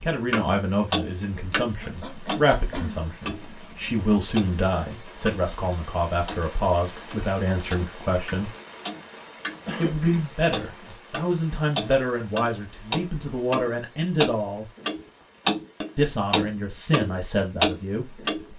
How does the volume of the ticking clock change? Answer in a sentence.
The volume of the ticking clock goes down, then up.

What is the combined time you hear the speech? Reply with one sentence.
The speech can be heard for 16 seconds in total.